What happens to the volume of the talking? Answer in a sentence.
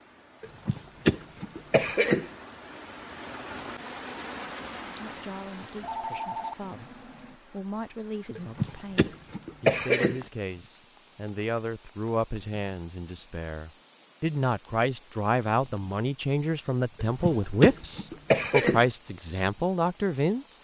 The loudness of the talking goes up.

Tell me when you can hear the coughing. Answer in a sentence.
The coughing can be heard from 0.4 to 2.3 s, from 8.3 to 10.2 s and from 16.9 to 18.9 s.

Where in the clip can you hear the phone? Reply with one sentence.
You can hear the phone from 5.7 to 7.3 s.